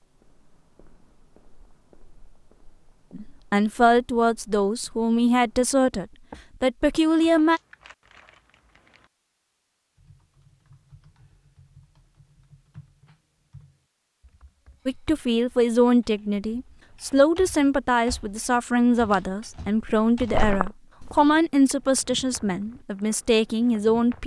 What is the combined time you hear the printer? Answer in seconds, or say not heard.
not heard.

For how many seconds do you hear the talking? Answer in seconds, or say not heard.
14 s.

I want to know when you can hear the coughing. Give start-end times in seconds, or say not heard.
not heard.